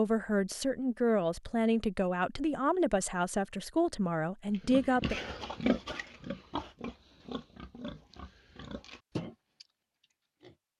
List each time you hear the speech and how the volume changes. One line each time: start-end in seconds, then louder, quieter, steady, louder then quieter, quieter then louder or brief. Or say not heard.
0.0-5.2 steady.